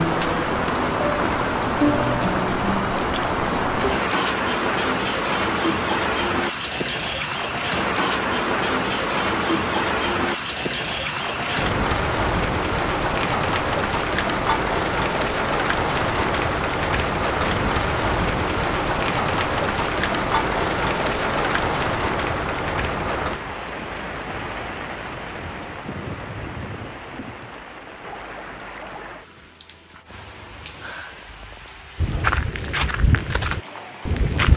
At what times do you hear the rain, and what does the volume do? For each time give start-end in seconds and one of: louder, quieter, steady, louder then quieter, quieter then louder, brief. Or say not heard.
0.0-34.5 quieter.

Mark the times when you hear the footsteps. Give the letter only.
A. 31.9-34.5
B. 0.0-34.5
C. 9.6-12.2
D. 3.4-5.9
A.